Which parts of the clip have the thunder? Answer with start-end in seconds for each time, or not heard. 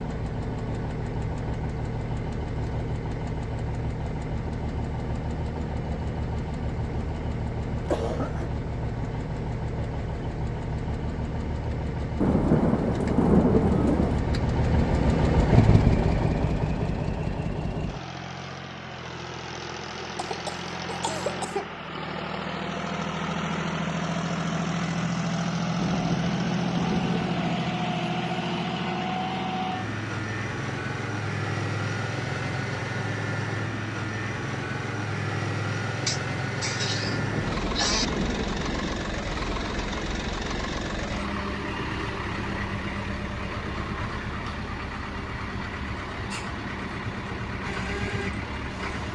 12.2-14.2, 25.8-27.8, 37.0-39.0.